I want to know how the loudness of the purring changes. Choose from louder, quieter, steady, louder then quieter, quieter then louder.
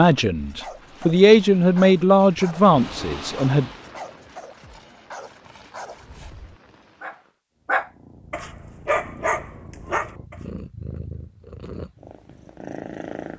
louder.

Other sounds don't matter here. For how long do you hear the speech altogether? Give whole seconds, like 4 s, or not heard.
4 s.